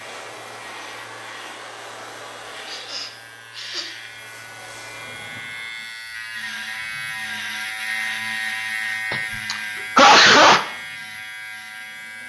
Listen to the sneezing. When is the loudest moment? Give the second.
10 s.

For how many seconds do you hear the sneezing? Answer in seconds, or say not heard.
3 s.